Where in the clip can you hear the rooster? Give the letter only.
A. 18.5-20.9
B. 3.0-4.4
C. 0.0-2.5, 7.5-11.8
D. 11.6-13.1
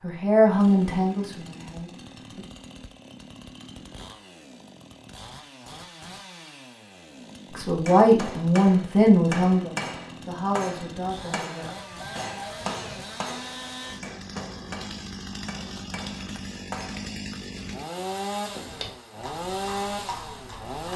D.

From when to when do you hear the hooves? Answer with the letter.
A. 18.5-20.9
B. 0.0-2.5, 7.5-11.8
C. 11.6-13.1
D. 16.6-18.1
A.